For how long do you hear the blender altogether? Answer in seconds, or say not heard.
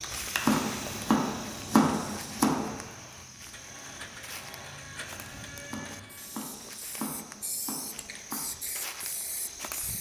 3 s.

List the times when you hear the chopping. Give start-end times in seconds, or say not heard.
0.5-2.8, 5.7-8.4.